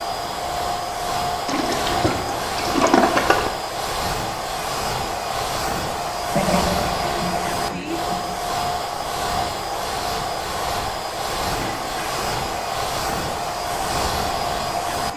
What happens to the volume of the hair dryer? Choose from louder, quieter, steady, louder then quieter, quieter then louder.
steady.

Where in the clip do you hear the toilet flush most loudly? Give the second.
3 s.